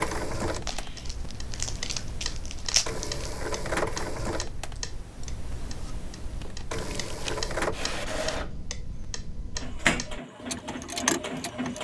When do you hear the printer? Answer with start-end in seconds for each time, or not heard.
0.0-11.7.